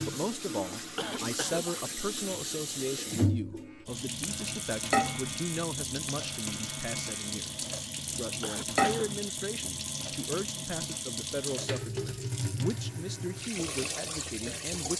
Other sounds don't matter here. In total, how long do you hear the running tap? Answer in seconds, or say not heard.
15 s.